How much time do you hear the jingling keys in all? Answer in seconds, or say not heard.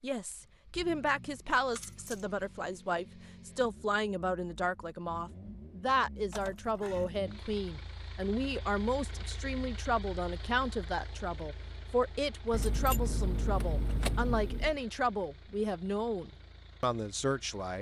4 s.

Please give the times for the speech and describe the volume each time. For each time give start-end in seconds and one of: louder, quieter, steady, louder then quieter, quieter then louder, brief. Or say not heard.
0.0-17.7 steady.